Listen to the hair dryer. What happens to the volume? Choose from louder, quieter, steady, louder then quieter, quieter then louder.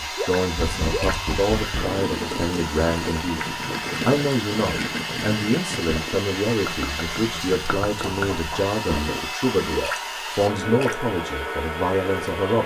steady.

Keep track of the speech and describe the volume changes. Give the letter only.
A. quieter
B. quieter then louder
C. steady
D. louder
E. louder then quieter
C.